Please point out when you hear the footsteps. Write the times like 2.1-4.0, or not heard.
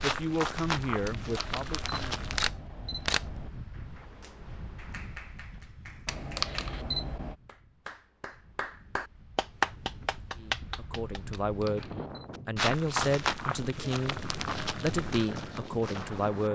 0.0-2.5, 12.3-16.5.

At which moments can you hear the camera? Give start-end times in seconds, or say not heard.
1.1-3.5, 6.0-7.3, 11.3-12.3.